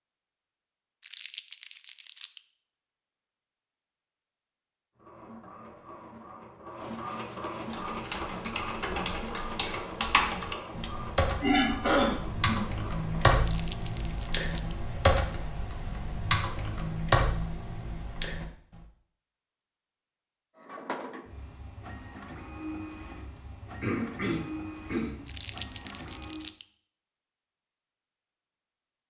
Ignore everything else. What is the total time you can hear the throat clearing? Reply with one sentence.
The throat clearing can be heard for 3 seconds in total.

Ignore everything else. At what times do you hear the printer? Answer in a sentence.
The printer can be heard from 5.0 to 13.3 s and from 20.6 to 26.6 s.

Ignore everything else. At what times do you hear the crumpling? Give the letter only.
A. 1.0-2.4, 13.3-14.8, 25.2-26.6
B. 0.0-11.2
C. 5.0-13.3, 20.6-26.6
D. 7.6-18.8
A.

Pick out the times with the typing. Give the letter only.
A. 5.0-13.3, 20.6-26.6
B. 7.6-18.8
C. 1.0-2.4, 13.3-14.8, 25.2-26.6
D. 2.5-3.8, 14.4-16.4
B.